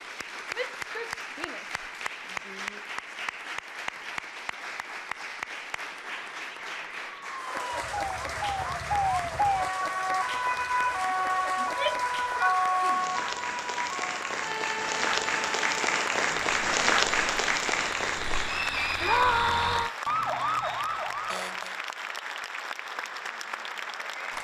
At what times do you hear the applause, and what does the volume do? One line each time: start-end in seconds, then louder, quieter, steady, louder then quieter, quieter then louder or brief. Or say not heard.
0.0-24.3 louder then quieter.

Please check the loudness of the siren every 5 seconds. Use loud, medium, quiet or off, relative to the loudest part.
off, loud, loud, medium, loud.